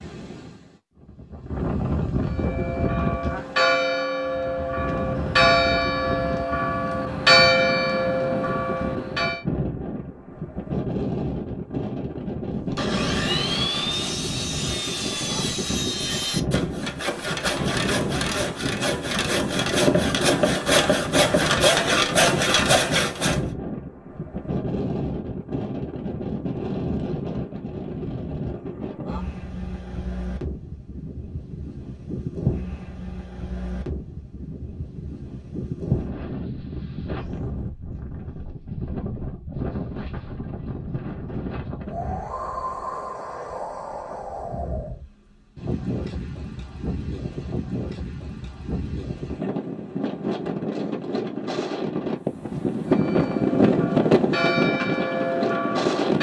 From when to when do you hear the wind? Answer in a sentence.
The wind can be heard from 0.0 to 56.1 s.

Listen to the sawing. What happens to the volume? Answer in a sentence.
The loudness of the sawing goes up.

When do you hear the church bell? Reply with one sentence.
You can hear the church bell from 2.3 to 9.4 s and from 52.9 to 56.1 s.